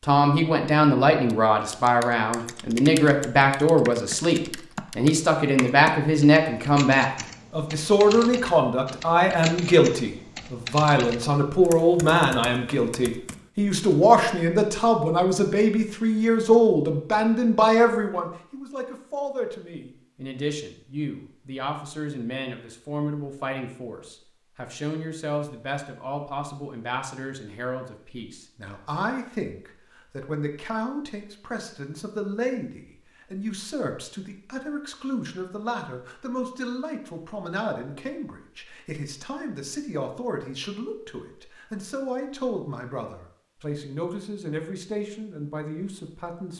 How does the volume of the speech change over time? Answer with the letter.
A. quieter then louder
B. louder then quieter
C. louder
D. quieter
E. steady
D.